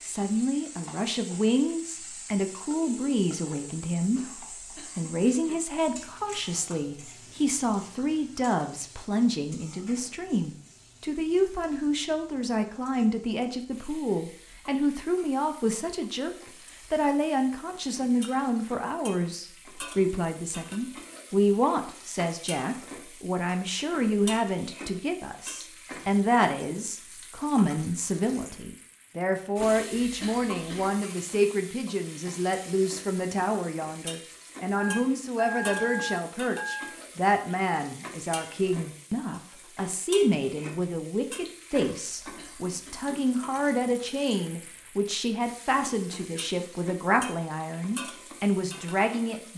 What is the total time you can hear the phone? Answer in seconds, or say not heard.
3 s.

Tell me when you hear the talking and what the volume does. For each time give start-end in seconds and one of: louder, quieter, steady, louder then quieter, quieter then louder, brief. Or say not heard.
0.0-49.5 steady.